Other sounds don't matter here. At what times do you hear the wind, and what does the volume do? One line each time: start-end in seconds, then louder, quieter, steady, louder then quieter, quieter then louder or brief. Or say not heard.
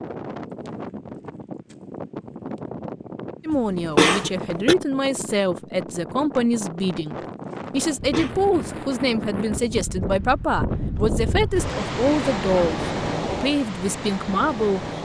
0.0-15.0 louder.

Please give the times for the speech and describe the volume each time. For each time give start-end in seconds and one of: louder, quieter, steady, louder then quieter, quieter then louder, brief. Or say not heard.
3.5-15.0 steady.